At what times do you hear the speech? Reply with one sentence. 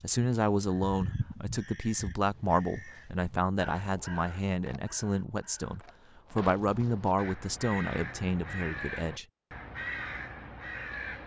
You can hear the speech from 0.0 to 9.2 s.